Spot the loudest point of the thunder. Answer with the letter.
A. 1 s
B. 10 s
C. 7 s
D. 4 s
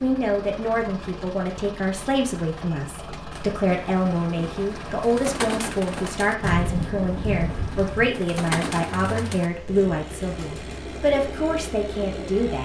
C.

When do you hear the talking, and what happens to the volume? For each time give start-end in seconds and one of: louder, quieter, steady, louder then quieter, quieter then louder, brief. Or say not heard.
0.0-12.6 steady.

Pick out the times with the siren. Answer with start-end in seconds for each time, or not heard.
not heard.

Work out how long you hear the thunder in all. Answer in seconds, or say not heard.
2 s.